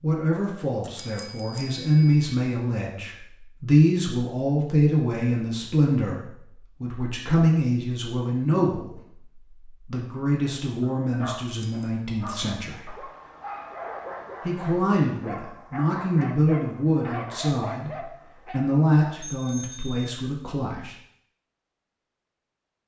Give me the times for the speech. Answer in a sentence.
The speech can be heard from 0.0 to 13.0 s and from 14.4 to 20.9 s.